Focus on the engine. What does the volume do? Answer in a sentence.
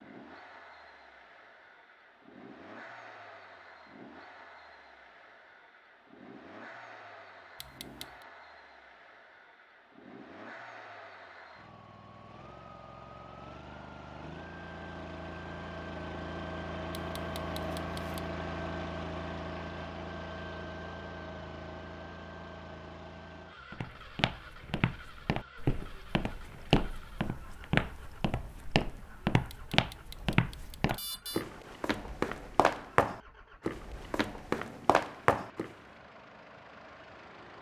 The volume of the engine goes up, then down.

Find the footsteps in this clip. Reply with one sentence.
You can hear the footsteps from 23.7 to 35.7 s.